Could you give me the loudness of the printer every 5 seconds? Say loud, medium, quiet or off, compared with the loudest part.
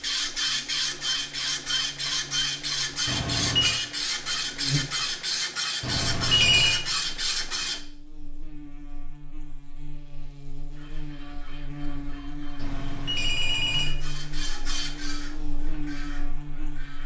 loud, loud, quiet, quiet.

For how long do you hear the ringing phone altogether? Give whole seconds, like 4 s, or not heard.
3 s.